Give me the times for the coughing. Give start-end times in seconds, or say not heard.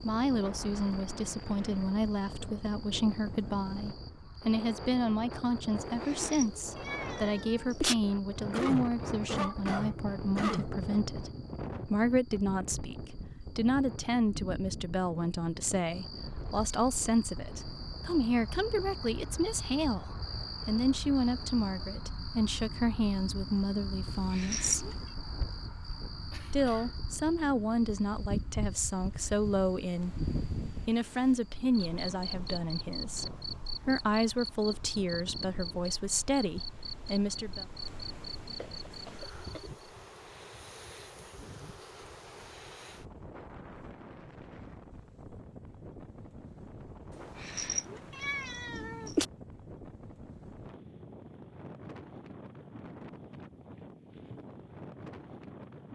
8.5-10.7, 26.3-26.9, 38.6-39.6.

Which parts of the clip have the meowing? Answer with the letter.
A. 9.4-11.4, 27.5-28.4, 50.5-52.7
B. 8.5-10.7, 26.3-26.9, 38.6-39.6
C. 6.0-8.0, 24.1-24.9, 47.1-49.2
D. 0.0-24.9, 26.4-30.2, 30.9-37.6
C.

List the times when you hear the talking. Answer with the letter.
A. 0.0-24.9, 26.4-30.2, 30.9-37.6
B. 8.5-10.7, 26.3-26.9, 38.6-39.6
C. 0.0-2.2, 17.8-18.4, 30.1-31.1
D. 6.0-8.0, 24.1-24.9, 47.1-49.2
A.